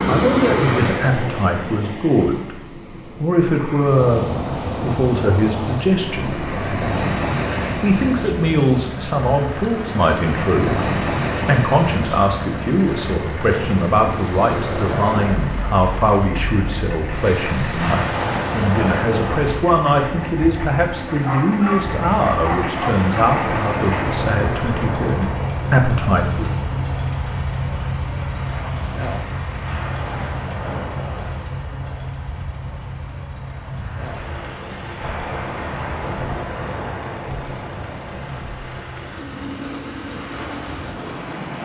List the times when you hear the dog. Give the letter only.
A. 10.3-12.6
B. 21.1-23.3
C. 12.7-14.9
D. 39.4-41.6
B.